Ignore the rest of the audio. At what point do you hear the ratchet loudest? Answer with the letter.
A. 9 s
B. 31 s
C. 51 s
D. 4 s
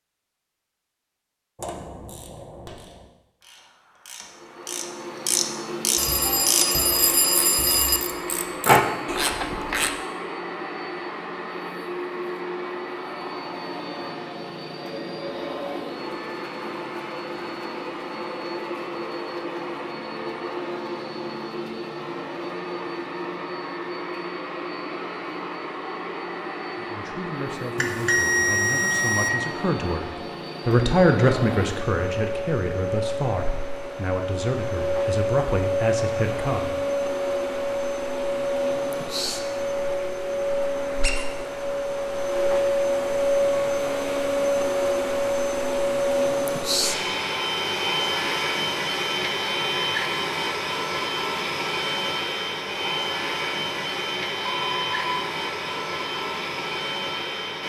A.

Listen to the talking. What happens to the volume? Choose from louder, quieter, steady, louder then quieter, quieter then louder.
louder then quieter.